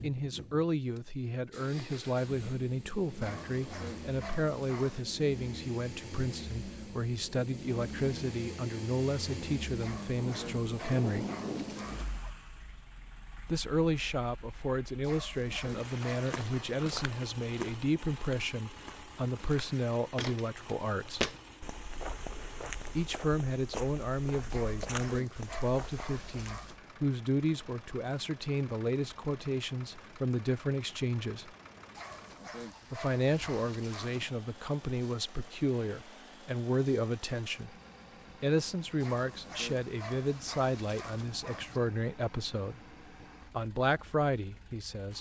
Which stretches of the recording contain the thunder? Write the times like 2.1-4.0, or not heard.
10.2-12.1.